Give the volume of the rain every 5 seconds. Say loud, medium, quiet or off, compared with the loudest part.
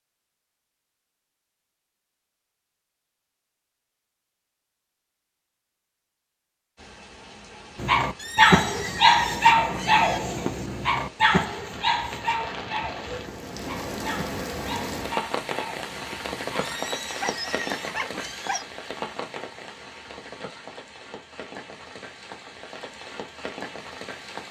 off, quiet, loud, loud, medium.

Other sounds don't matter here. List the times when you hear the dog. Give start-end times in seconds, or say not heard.
7.8-18.6.